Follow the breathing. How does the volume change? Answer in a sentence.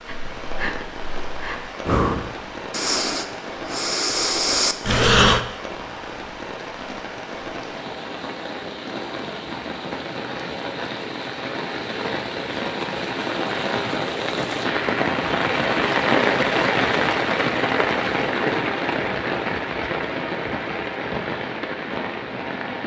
The loudness of the breathing goes up.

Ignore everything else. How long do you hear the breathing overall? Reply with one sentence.
You can hear the breathing for 5 seconds altogether.